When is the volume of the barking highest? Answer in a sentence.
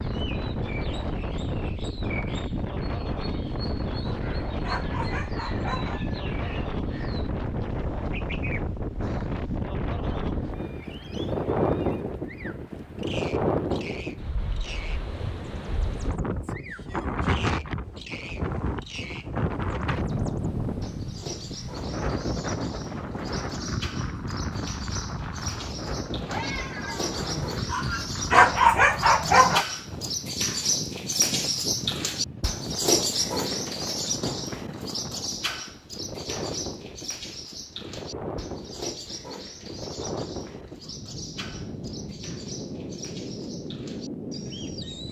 The loudest moment of the barking is at 29 seconds.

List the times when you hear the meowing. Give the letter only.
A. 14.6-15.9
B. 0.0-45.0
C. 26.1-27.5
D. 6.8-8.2
C.